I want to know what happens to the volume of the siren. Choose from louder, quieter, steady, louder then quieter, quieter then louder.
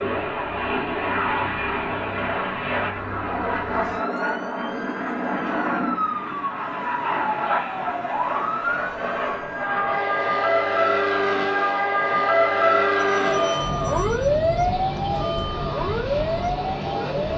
louder.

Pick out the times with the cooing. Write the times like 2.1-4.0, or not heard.
not heard.